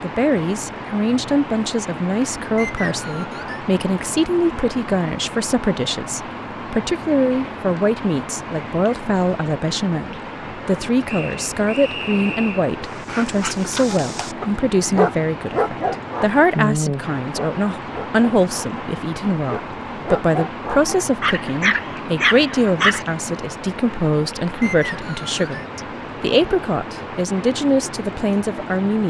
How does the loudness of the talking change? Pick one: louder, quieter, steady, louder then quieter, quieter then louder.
steady.